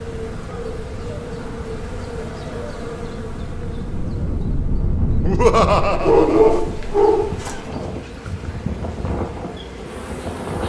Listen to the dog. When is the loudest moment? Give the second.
6 s.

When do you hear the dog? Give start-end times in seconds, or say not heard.
6.0-7.6.